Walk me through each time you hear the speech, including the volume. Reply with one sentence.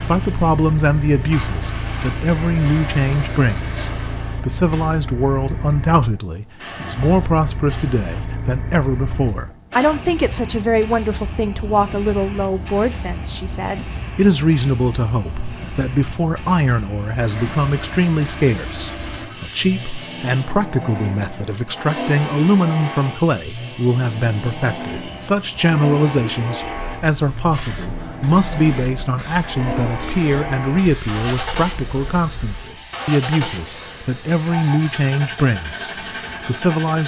You can hear the speech from 0.0 to 37.0 s, at a steady volume.